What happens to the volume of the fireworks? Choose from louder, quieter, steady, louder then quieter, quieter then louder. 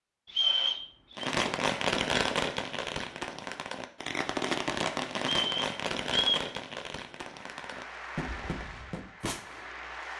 quieter.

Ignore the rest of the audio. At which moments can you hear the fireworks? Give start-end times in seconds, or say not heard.
1.1-9.8.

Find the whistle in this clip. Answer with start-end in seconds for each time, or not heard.
0.2-1.3, 5.2-6.5.